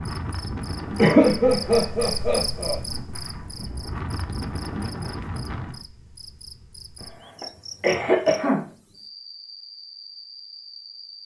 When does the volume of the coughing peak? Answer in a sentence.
The loudest moment of the coughing is at 1 second.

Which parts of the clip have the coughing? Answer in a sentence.
The coughing can be heard from 0.9 to 2.8 s and from 7.0 to 8.7 s.